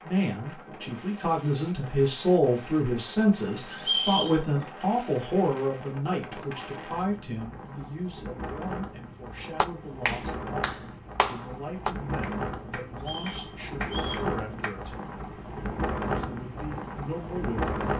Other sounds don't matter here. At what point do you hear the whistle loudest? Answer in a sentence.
The volume of the whistle peaks at 4 seconds.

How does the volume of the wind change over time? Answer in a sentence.
The loudness of the wind goes up.